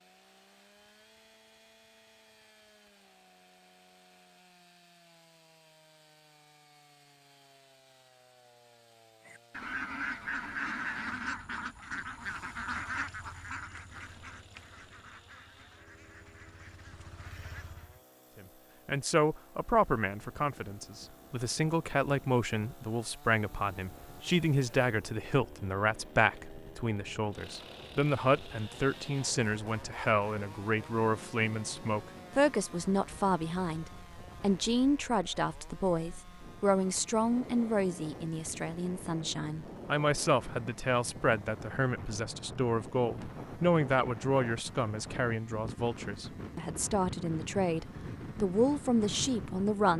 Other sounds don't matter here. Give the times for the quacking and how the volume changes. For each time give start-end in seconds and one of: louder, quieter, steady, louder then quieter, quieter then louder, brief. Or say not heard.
9.2-18.0 quieter.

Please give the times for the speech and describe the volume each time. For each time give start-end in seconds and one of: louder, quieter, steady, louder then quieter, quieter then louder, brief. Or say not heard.
18.4-49.9 steady.